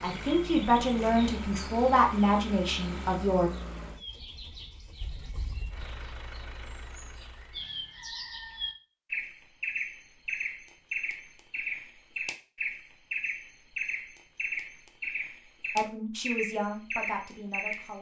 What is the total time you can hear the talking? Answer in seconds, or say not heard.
6 s.